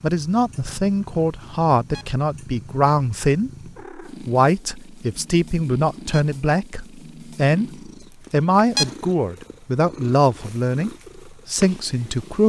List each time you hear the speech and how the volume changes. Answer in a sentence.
You can hear the speech from 0.0 to 12.4 s, at a steady volume.